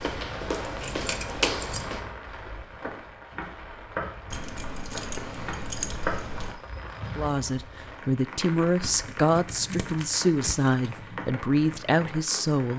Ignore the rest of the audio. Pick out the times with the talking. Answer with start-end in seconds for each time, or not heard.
7.2-12.7.